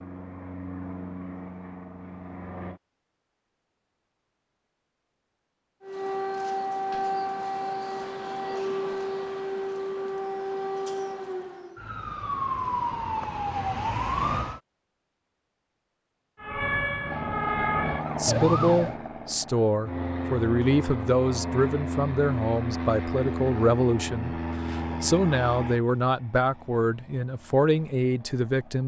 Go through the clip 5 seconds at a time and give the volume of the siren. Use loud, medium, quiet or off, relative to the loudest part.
off, loud, loud, loud, off, off.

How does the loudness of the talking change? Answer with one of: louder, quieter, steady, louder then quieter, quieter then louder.
steady.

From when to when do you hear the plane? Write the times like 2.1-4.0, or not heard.
0.0-2.8, 17.0-28.8.